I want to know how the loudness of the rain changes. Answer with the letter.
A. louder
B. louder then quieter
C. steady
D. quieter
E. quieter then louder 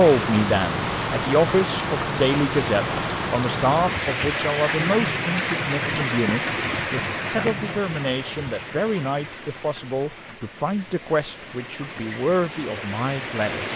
D.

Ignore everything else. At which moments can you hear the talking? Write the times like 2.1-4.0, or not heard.
0.0-13.7.